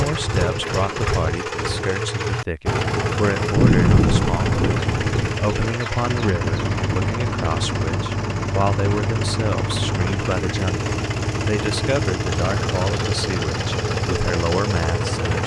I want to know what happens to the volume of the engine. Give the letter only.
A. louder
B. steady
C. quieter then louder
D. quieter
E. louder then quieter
B.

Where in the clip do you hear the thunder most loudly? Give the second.
4 s.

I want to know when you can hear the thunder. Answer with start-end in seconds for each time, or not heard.
3.5-5.3.